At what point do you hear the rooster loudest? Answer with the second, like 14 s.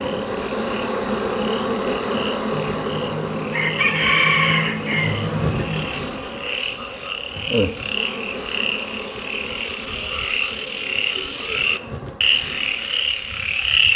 4 s.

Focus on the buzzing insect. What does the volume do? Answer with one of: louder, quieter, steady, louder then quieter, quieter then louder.
quieter.